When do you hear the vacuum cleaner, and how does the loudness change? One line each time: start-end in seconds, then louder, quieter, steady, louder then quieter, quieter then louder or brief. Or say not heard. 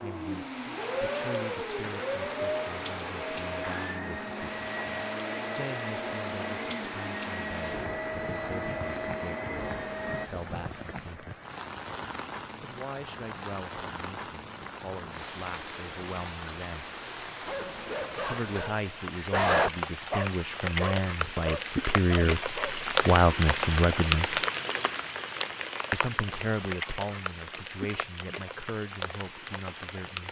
0.0-10.3 steady.